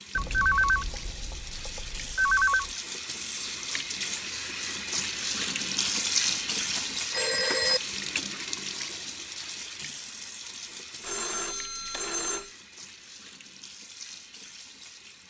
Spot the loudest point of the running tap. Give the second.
6 s.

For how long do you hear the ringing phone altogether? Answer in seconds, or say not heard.
6 s.